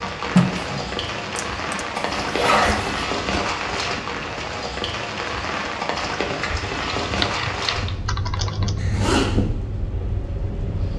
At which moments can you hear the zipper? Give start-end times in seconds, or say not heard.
1.9-3.1, 8.8-9.4.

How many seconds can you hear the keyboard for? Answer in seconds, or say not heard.
3 s.